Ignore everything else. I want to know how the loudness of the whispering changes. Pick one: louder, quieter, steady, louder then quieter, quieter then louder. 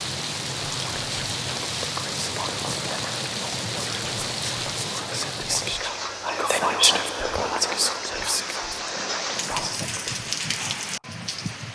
louder then quieter.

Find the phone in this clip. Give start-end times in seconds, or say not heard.
not heard.